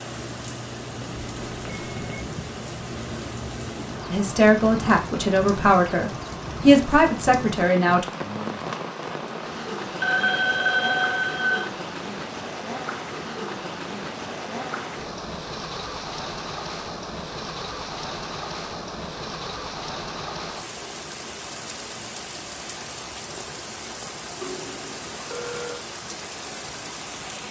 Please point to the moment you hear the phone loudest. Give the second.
11 s.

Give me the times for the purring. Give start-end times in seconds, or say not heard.
not heard.